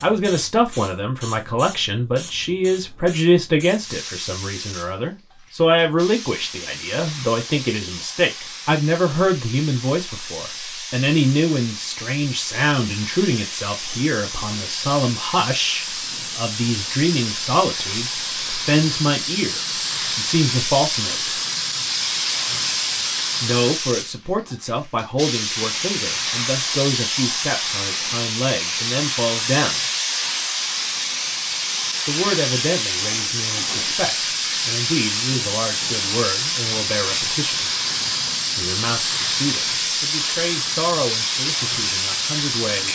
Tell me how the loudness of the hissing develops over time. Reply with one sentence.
The loudness of the hissing goes up.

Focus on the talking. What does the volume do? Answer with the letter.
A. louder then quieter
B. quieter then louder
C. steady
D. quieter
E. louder
D.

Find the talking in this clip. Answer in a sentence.
You can hear the talking from 0.0 to 21.4 s, from 23.4 to 29.8 s, from 32.0 to 37.7 s and from 38.5 to 42.9 s.